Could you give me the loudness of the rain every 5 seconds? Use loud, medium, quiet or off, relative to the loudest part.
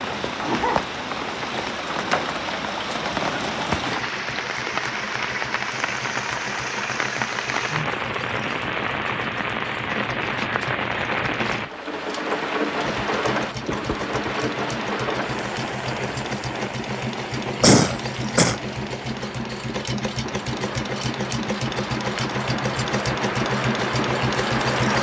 loud, loud, loud, medium, loud.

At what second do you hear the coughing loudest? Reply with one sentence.
The loudest moment of the coughing is at 18 seconds.